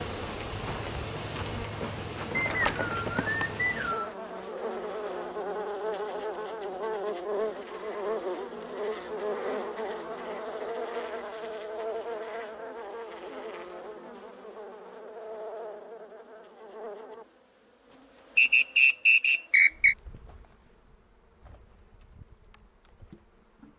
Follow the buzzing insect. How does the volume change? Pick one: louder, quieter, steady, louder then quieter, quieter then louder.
quieter.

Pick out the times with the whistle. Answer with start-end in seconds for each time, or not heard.
2.3-4.2, 18.4-19.9.